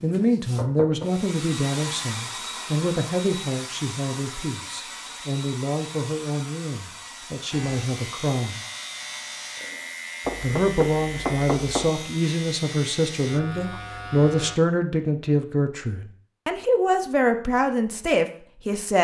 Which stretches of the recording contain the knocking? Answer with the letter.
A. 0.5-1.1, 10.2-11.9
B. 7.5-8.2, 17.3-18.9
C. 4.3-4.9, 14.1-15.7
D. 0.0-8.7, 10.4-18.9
A.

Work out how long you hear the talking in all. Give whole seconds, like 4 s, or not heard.
17 s.